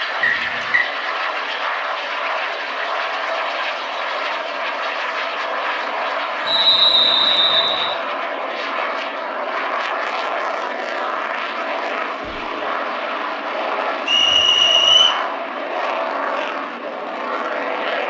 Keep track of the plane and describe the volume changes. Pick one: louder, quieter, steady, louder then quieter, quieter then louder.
steady.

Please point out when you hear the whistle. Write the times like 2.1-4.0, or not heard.
0.2-0.8, 6.5-8.0, 14.1-15.2.